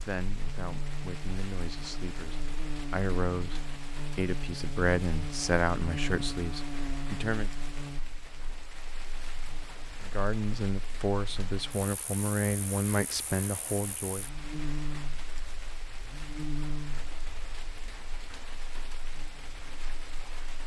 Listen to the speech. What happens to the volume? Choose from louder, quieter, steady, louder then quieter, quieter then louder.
louder.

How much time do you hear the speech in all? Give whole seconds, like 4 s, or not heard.
12 s.